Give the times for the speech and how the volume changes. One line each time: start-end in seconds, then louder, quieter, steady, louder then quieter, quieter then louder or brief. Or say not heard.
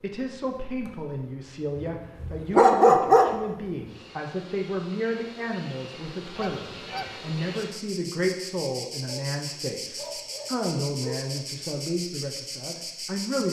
0.0-13.4 steady.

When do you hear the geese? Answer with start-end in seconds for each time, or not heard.
6.3-7.2.